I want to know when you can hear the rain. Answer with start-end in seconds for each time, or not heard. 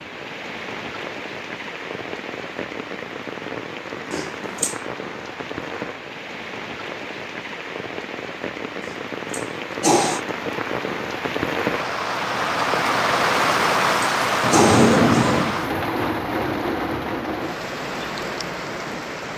0.0-19.3.